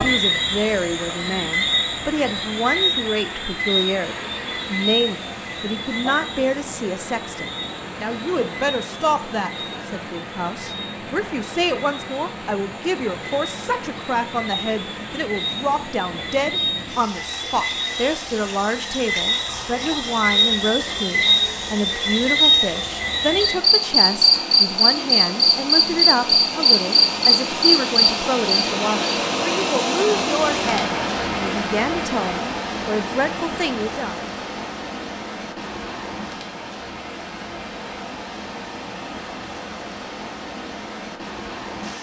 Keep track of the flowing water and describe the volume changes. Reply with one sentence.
The volume of the flowing water goes up, then down.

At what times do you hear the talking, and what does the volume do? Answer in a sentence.
You can hear the talking from 0.0 to 34.2 s, at a steady volume.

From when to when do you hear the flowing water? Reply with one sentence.
You can hear the flowing water from 0.0 to 41.9 s.